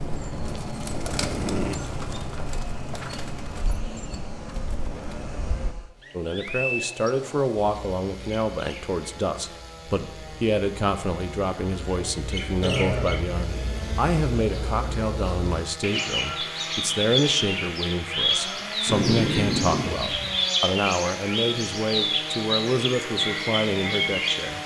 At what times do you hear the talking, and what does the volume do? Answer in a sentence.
You can hear the talking from 6.1 to 24.6 s, at a steady volume.